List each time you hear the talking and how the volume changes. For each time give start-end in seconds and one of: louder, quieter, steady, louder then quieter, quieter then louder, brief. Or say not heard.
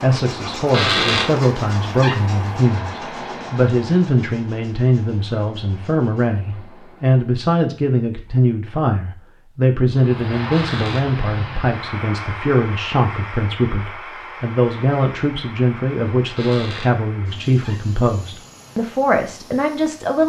0.0-20.2 steady.